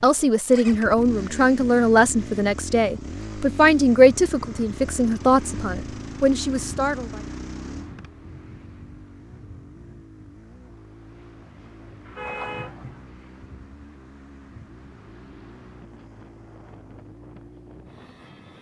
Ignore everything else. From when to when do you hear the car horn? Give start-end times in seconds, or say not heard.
12.1-13.1.